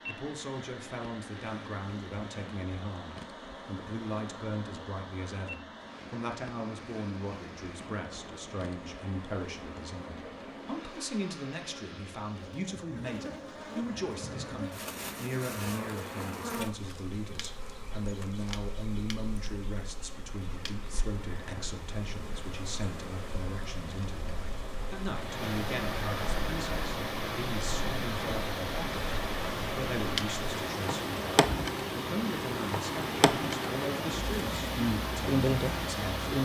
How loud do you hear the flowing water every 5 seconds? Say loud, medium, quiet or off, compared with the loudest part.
quiet, quiet, quiet, medium, quiet, loud, loud, loud.